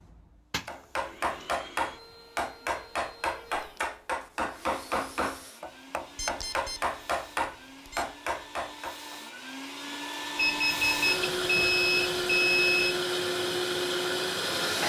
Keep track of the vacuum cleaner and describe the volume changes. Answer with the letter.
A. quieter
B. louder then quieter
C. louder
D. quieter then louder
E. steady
C.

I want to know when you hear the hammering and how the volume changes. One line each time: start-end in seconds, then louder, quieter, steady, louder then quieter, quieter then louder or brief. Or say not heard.
0.7-9.2 steady.